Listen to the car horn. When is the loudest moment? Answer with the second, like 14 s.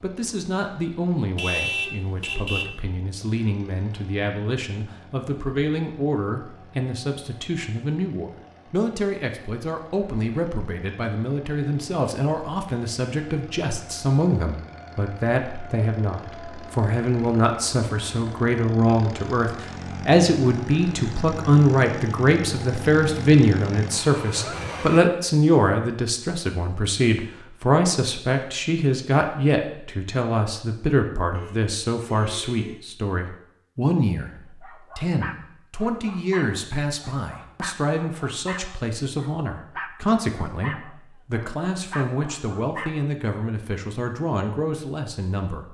2 s.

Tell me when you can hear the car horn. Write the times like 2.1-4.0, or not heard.
1.4-2.8, 31.3-32.8.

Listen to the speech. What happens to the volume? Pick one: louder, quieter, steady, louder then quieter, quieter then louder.
louder then quieter.